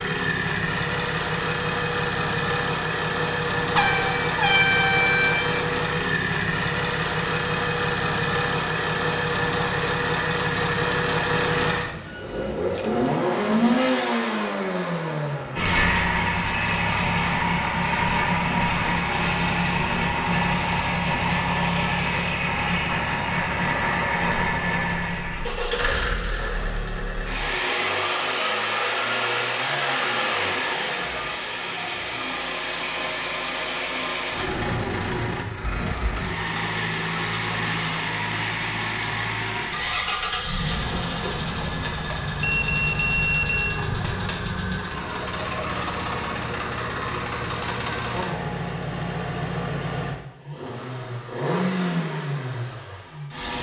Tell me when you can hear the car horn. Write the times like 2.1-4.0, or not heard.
3.8-5.5.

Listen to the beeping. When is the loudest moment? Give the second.
43 s.